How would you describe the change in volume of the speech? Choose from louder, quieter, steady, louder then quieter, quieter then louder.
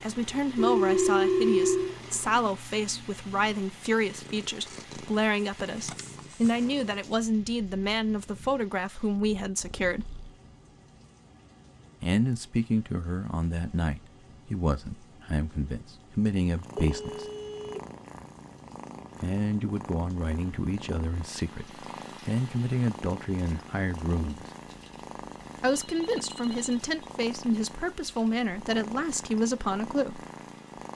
steady.